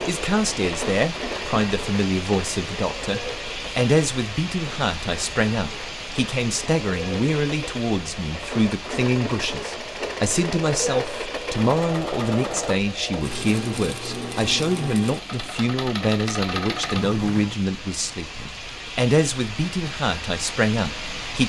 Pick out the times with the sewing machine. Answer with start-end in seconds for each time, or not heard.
0.0-17.6.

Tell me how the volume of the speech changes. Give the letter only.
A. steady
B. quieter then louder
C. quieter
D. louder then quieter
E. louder
A.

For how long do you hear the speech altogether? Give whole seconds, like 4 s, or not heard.
21 s.